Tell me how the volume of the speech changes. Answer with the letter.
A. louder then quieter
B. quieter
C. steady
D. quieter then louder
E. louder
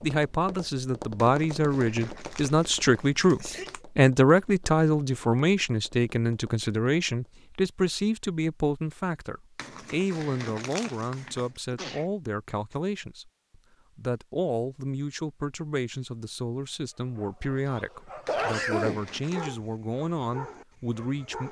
B.